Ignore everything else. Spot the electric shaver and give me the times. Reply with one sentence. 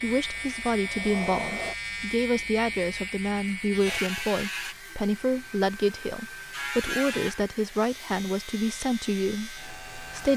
The electric shaver can be heard from 0.0 to 4.8 s and from 6.5 to 10.3 s.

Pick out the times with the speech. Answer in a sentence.
You can hear the speech from 0.0 to 10.3 s.